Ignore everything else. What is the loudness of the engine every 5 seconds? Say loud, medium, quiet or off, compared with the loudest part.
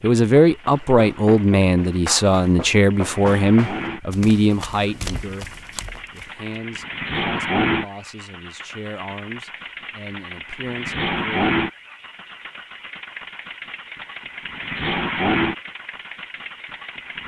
medium, loud, loud, loud.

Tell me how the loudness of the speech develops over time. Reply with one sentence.
The loudness of the speech goes down.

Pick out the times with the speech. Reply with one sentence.
You can hear the speech from 0.0 to 11.6 s.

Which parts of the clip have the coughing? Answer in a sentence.
The coughing can't be heard in this clip.